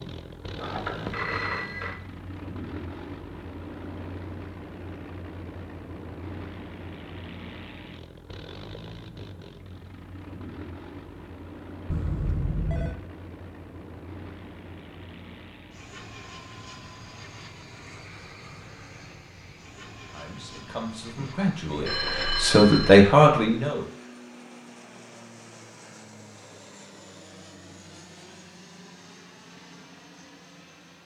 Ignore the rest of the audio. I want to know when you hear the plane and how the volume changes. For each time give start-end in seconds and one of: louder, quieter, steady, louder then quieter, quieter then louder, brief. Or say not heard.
0.0-31.0 quieter.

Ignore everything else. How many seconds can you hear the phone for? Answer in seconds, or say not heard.
4 s.